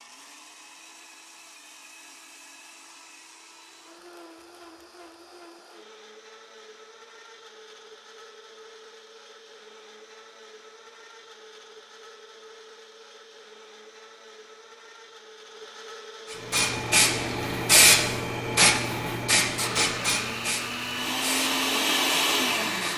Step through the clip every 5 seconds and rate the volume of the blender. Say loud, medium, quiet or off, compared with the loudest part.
quiet, quiet, quiet, quiet, loud.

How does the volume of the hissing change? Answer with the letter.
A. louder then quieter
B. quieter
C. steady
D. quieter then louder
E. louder
B.